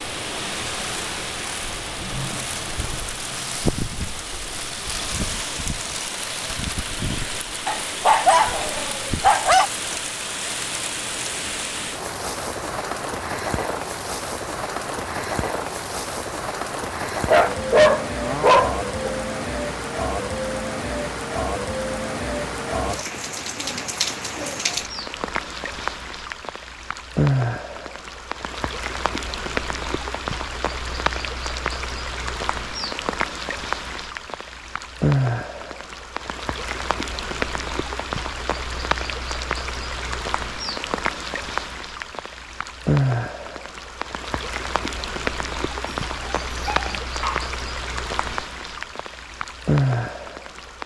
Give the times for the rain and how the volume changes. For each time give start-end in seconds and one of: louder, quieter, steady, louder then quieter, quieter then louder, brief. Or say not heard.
0.0-50.8 steady.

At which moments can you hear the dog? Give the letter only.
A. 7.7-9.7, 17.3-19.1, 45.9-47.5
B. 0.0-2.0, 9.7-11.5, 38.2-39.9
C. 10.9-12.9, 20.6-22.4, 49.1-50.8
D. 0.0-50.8
A.